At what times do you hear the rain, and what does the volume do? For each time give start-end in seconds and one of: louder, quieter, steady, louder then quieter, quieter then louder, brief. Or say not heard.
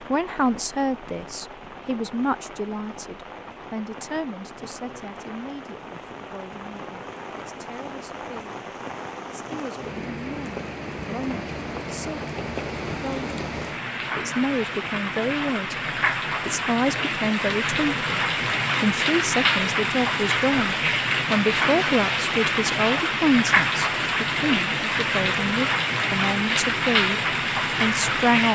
0.0-28.5 louder.